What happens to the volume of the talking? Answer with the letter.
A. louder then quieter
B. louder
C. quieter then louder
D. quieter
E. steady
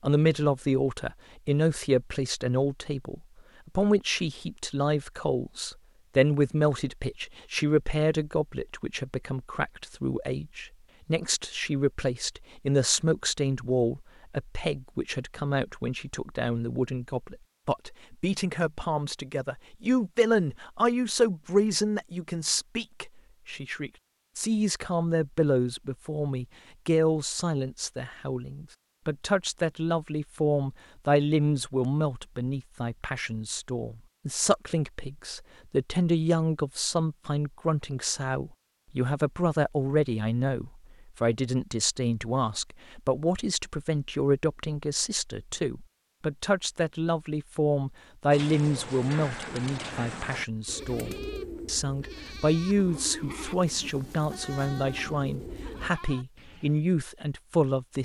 E.